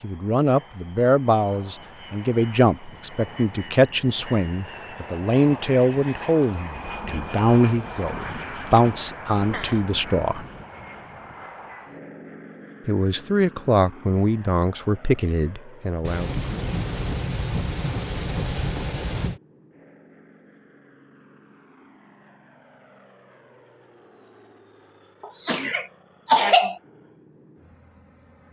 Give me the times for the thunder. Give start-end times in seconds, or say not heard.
6.8-10.6, 16.0-19.4.